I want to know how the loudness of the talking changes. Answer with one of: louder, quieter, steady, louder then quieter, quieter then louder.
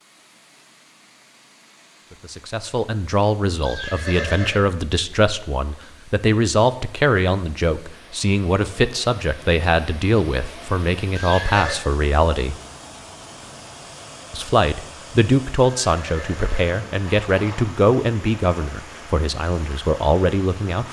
steady.